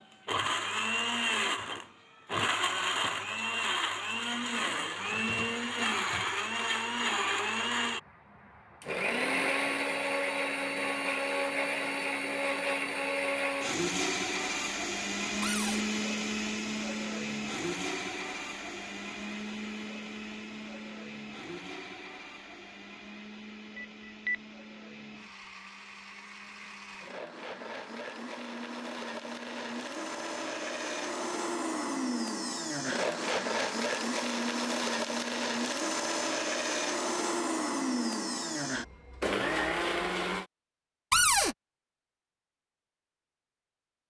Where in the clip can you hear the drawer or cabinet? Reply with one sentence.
You can hear the drawer or cabinet from 5.0 to 6.3 s, from 15.4 to 15.8 s and from 41.1 to 41.5 s.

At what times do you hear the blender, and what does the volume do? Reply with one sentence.
The blender can be heard from 0.1 to 40.5 s, getting quieter then louder.